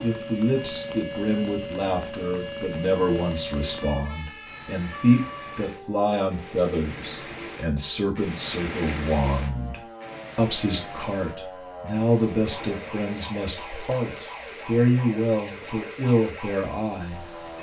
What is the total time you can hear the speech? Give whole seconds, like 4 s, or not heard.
17 s.